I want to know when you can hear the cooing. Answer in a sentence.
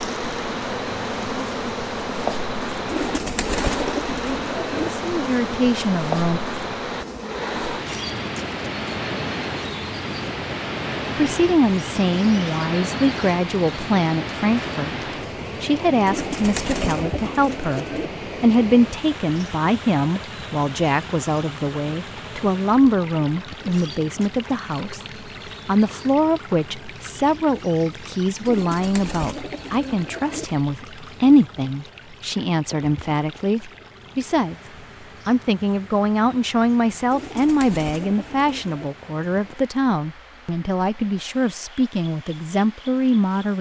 You can hear the cooing from 2.9 to 4.9 s, from 16.1 to 18.1 s, from 28.4 to 30.4 s and from 37.1 to 38.9 s.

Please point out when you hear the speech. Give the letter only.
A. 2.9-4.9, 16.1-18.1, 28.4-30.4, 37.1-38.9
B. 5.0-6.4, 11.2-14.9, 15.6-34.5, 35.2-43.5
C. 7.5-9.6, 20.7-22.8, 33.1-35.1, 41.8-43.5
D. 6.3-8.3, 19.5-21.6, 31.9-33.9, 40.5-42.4
B.